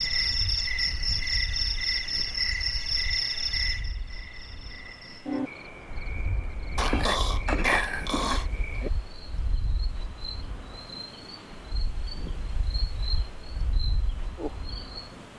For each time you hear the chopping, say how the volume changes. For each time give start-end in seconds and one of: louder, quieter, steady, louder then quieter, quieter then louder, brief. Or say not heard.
not heard.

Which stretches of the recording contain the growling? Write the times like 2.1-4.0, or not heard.
6.8-8.4.